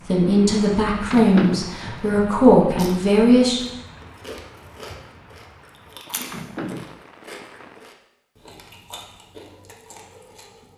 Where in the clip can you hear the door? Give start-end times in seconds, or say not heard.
1.1-1.8, 6.3-7.0.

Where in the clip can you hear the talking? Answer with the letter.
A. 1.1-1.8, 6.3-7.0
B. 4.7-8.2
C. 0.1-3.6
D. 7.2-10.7
C.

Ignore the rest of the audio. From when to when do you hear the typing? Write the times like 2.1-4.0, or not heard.
not heard.